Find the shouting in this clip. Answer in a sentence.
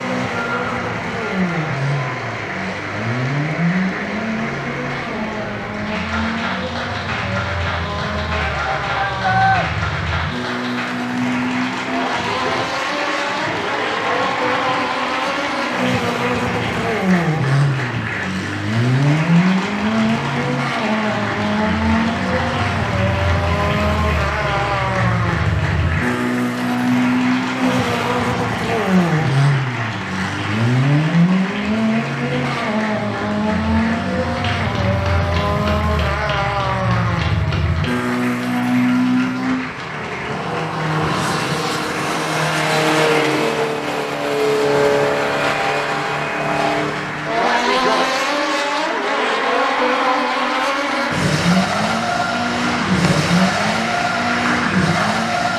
The shouting can be heard from 8.3 to 9.7 s.